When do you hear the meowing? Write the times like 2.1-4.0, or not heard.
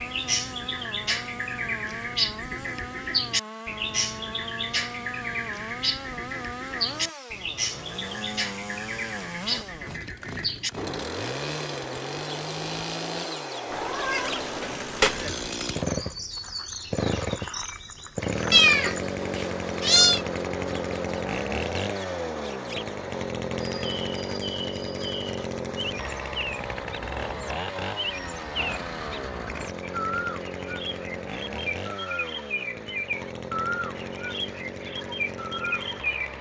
13.7-15.2, 18.5-20.2.